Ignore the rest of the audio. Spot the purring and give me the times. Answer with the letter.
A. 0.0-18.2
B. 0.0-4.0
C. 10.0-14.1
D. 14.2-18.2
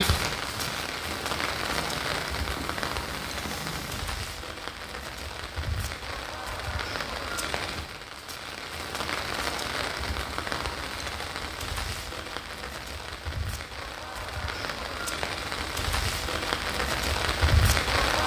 B.